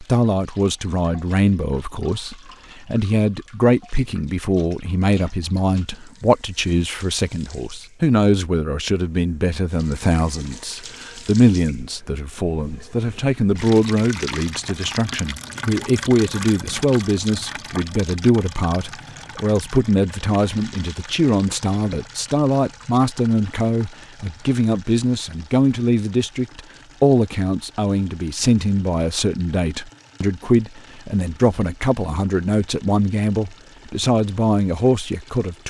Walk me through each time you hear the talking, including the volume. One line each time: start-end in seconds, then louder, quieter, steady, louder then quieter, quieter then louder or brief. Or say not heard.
0.0-35.6 steady.